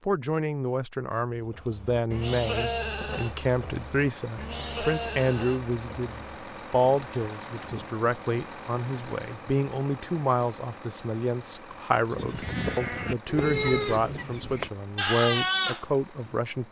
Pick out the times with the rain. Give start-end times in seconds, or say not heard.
not heard.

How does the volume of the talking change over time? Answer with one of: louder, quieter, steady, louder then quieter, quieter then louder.
steady.